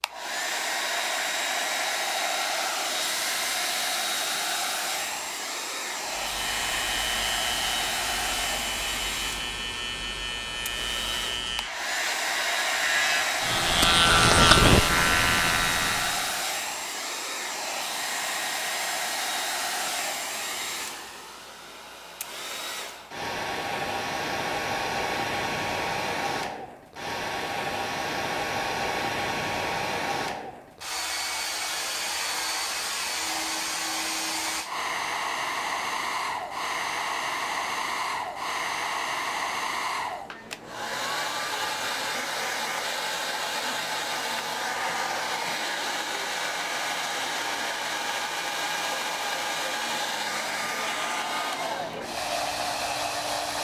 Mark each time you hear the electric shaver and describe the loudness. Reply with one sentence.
You can hear the electric shaver from 6.0 to 16.4 s, getting louder.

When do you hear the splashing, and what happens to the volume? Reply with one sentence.
You can't hear the splashing here.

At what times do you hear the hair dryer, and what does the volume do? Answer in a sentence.
You can hear the hair dryer from 0.0 to 53.5 s, at a steady volume.